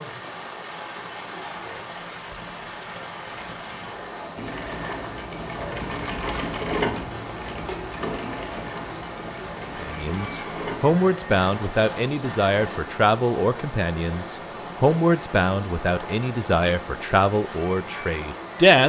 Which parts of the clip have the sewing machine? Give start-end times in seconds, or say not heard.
4.3-12.8.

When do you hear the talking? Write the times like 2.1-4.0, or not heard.
9.8-18.8.